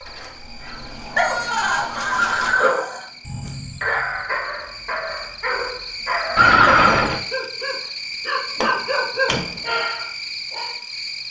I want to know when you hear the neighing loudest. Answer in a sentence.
The volume of the neighing peaks at 7 seconds.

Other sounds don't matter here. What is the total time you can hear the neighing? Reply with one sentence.
The neighing can be heard for 3 seconds in total.